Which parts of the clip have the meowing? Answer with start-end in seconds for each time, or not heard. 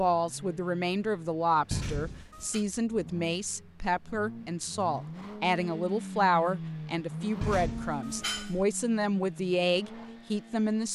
1.7-2.6, 7.4-8.7.